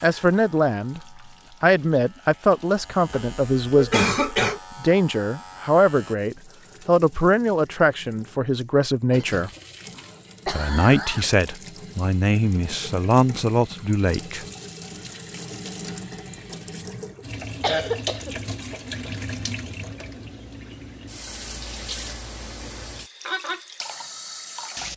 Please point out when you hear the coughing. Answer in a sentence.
You can hear the coughing from 3.1 to 4.6 s, from 9.9 to 11.5 s and from 17.4 to 18.8 s.